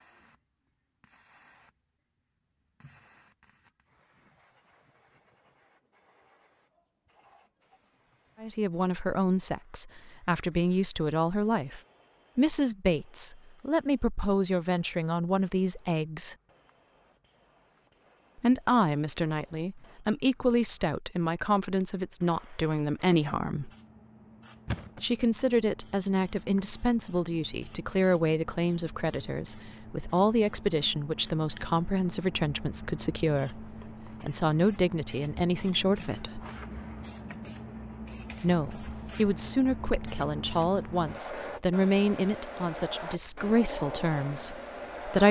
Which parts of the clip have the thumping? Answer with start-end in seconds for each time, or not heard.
24.6-25.2.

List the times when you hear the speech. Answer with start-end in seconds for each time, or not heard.
8.4-16.4, 18.4-23.7, 25.0-36.4, 38.4-45.2.